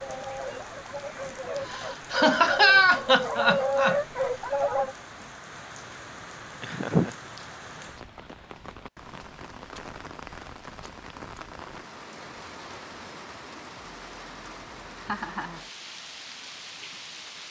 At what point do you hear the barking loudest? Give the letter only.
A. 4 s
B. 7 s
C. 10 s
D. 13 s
A.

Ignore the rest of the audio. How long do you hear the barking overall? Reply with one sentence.
The barking can be heard for 5 seconds in total.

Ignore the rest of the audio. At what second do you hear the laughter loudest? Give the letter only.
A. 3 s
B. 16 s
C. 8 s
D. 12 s
A.